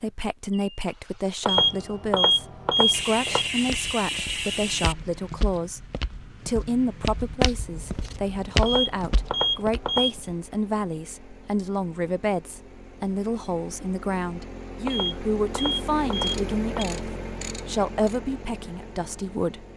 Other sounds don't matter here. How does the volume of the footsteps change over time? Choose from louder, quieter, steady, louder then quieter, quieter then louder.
louder.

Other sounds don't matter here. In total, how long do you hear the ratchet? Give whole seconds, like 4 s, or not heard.
4 s.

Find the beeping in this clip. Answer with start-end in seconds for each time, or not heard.
1.4-3.5, 8.6-10.2, 14.8-16.9.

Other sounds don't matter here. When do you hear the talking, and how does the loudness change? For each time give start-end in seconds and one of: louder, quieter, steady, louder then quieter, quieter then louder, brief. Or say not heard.
0.0-19.6 steady.